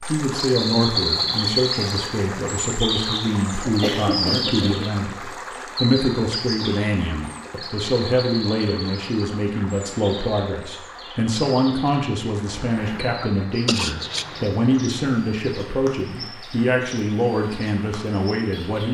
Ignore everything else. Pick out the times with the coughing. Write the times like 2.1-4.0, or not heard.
3.6-5.4, 12.5-14.4.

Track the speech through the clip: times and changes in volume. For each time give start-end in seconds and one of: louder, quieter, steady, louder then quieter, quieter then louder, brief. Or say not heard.
0.1-18.8 steady.